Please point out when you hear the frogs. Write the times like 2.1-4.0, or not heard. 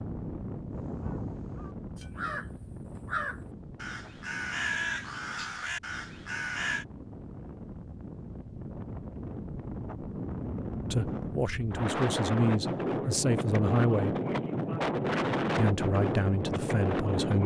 not heard.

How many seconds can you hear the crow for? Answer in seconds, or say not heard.
6 s.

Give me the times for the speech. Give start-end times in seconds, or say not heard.
10.9-14.2, 15.6-17.4.